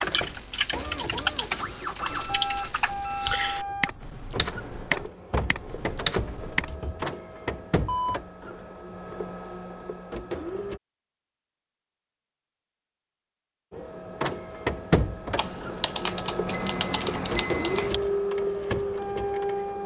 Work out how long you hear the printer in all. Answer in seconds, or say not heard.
17 s.